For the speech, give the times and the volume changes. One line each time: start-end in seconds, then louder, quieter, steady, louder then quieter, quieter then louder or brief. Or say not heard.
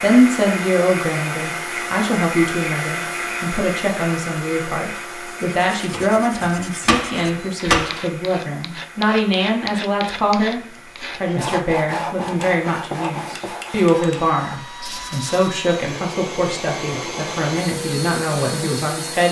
0.0-19.2 steady.